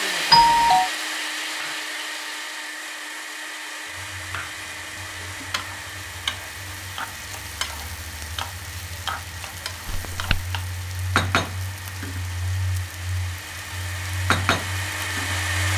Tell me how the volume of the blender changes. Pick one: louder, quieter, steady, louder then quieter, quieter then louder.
quieter then louder.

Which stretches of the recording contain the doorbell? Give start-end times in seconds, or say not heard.
0.3-0.9, 9.8-10.4.